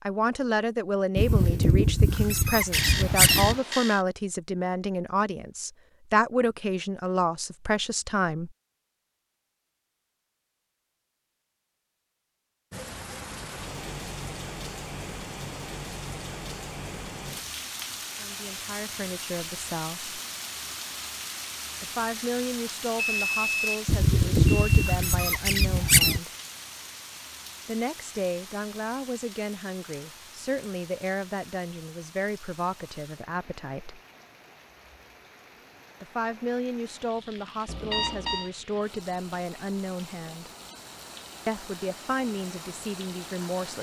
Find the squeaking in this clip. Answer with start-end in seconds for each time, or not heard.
1.1-3.5, 23.9-26.2.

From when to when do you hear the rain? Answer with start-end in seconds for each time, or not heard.
12.7-43.7.